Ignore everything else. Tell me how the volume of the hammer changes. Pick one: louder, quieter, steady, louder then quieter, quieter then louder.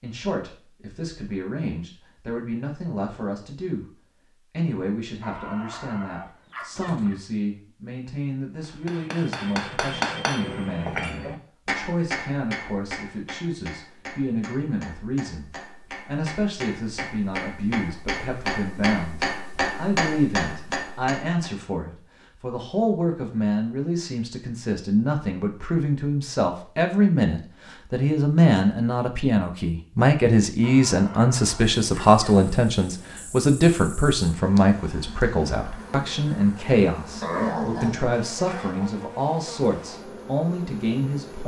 quieter then louder.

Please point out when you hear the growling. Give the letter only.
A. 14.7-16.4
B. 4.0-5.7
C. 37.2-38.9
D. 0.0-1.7
C.